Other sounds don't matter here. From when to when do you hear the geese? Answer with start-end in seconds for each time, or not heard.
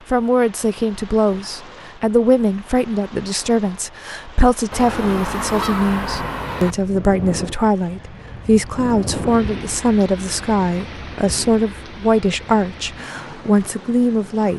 4.7-6.8.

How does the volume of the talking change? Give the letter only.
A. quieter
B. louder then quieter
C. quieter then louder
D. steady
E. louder
D.